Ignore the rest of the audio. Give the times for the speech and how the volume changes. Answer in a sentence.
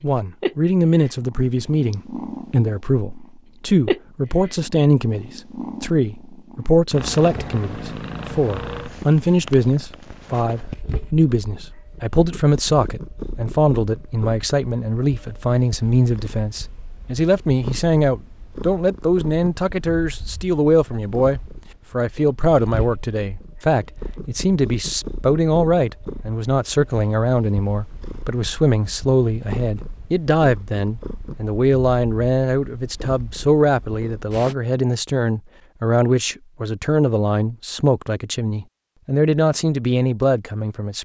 You can hear the speech from 0.0 to 41.0 s, at a steady volume.